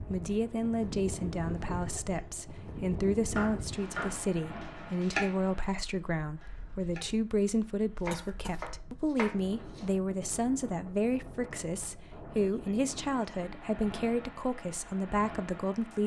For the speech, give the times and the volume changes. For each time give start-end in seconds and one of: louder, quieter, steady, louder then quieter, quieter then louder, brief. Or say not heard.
0.0-16.0 steady.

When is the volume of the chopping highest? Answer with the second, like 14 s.
5 s.